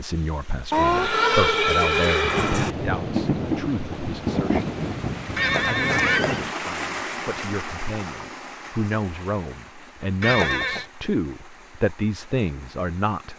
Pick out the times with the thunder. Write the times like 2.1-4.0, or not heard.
2.2-6.5.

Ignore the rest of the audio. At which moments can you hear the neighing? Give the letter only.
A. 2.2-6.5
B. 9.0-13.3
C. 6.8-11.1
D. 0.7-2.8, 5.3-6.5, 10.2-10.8
D.